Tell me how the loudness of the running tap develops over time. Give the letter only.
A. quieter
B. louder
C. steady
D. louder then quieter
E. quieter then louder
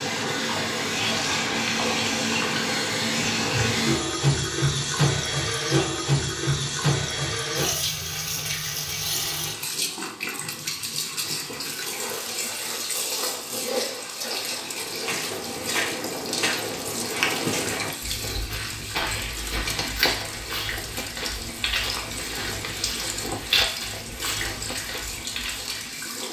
A.